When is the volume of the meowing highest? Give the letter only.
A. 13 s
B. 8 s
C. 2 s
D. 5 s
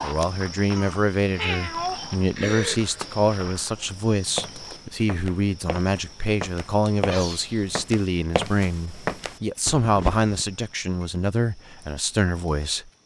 C.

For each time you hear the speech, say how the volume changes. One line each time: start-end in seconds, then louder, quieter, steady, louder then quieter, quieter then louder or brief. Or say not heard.
0.0-12.9 steady.